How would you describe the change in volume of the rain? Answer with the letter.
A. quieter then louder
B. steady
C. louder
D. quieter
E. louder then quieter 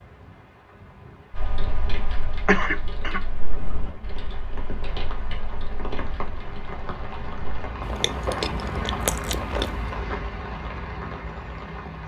C.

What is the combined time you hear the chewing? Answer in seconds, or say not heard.
2 s.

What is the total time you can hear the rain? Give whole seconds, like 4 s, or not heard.
12 s.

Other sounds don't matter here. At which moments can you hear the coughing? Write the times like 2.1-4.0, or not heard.
2.5-3.2.